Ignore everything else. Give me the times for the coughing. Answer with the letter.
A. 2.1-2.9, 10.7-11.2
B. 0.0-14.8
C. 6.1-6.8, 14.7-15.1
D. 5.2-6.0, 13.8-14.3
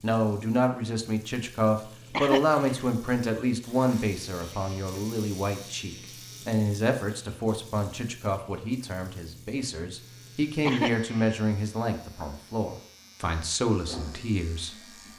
A.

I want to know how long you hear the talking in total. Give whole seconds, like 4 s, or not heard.
15 s.